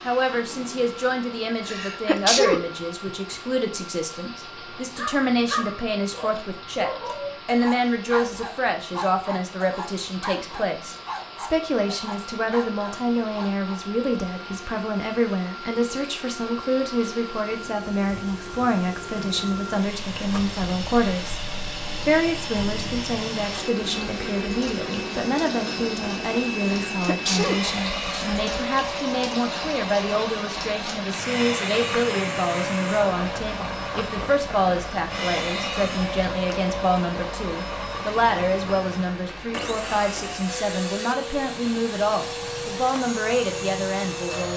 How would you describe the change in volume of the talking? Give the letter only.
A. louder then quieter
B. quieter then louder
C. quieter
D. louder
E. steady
E.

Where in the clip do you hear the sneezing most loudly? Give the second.
2 s.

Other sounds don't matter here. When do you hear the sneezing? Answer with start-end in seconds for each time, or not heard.
1.6-3.1, 26.9-28.1.